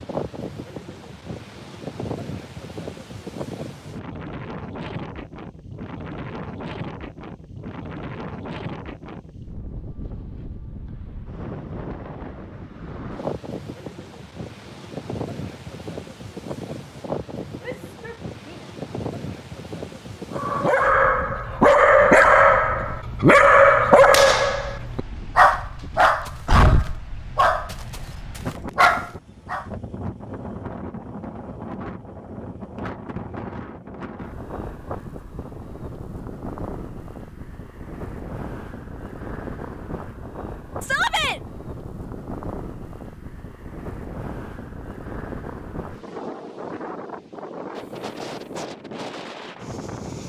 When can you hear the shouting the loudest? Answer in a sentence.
The loudest moment of the shouting is at 41 seconds.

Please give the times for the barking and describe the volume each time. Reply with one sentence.
The barking can be heard from 20.4 to 29.6 s, getting quieter.